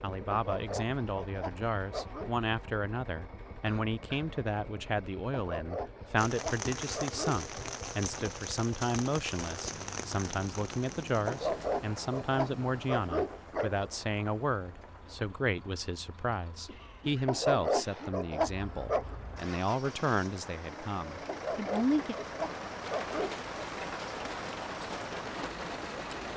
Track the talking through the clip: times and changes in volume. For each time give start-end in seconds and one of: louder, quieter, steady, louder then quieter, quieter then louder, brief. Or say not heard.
0.0-22.1 steady.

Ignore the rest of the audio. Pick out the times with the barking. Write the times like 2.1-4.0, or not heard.
0.3-2.3, 5.3-7.5, 11.2-13.9, 17.2-19.1, 21.2-23.6.